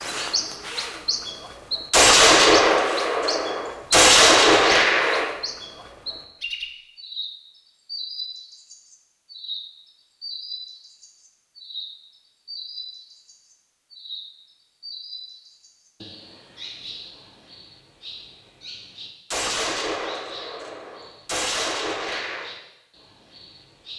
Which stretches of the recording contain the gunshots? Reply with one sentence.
The gunshots can be heard from 1.9 to 5.2 s and from 19.3 to 22.5 s.